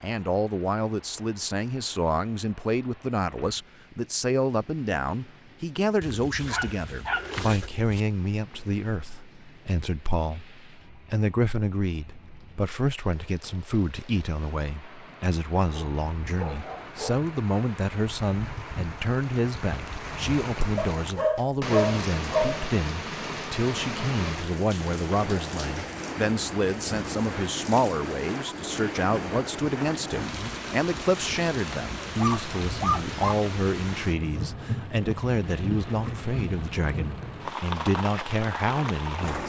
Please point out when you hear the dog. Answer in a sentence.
The dog can be heard from 6.0 to 8.0 s, from 15.7 to 17.2 s, from 20.8 to 22.7 s and from 32.0 to 33.4 s.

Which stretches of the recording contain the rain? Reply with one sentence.
The rain can be heard from 0.0 to 39.4 s.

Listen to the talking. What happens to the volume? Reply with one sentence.
The volume of the talking stays about the same.